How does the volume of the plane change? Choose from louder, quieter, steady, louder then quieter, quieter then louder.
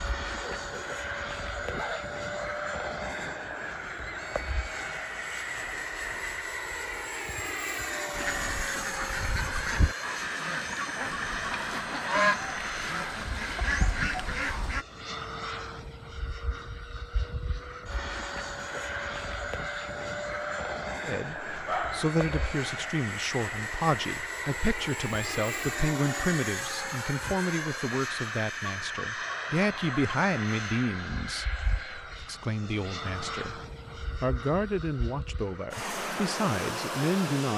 steady.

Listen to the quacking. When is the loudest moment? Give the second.
12 s.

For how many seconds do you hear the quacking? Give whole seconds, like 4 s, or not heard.
7 s.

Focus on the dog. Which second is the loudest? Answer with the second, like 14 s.
22 s.